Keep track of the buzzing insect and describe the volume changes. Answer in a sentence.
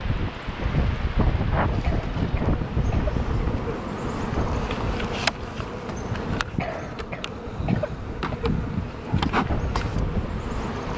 The loudness of the buzzing insect goes up.